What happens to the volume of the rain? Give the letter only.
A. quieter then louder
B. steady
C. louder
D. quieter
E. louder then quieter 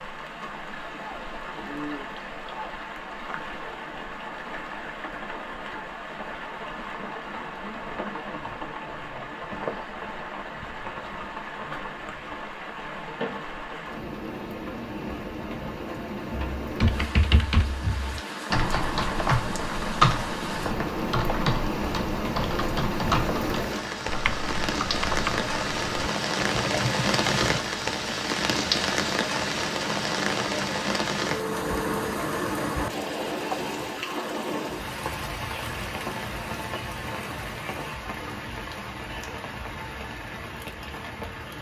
E.